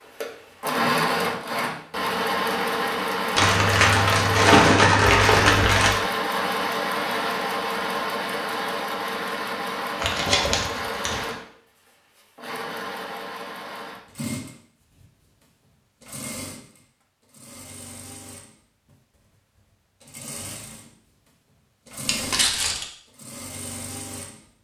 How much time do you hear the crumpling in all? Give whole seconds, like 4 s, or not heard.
5 s.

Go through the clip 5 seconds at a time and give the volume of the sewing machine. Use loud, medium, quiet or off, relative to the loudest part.
loud, loud, medium, quiet, quiet.